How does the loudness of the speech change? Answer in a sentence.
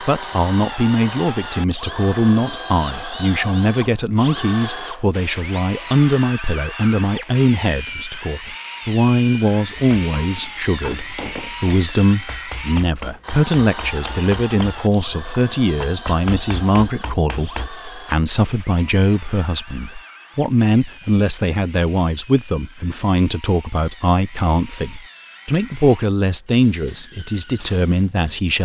The volume of the speech stays about the same.